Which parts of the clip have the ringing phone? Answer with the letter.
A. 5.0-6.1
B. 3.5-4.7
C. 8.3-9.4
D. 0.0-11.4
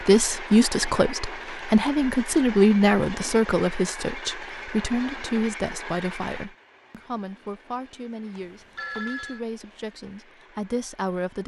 C.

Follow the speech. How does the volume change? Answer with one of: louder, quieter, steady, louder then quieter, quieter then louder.
quieter.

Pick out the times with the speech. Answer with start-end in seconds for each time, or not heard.
0.0-11.4.